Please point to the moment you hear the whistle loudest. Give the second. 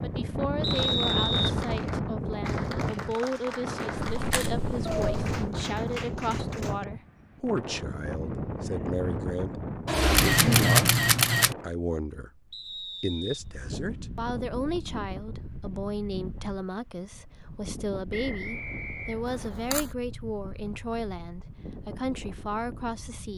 1 s.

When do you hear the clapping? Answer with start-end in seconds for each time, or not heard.
0.6-6.8.